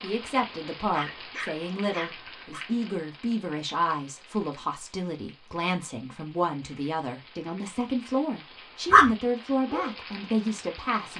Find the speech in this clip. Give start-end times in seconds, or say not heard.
0.0-11.1.